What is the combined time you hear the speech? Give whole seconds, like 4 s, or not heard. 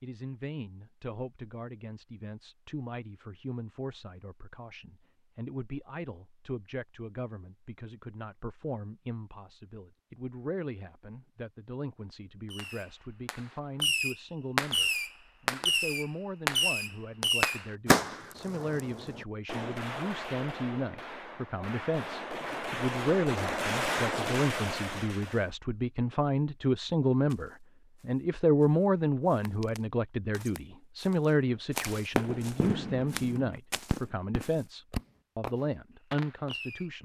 37 s.